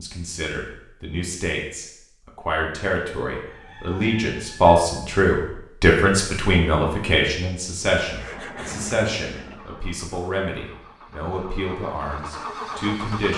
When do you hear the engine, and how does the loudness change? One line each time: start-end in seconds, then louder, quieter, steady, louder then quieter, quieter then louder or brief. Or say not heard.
8.1-13.3 quieter then louder.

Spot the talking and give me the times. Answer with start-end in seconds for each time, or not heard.
0.0-13.3.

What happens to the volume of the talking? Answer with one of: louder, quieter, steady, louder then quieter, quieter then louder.
louder then quieter.